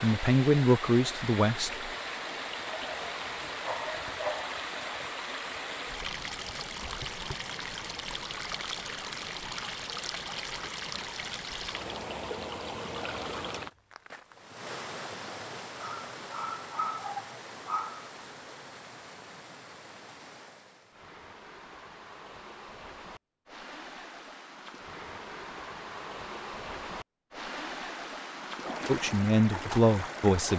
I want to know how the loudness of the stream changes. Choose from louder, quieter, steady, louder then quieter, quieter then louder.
quieter then louder.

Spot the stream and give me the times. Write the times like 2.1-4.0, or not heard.
0.0-30.5.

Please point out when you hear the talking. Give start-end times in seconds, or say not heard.
0.0-1.9, 28.9-30.5.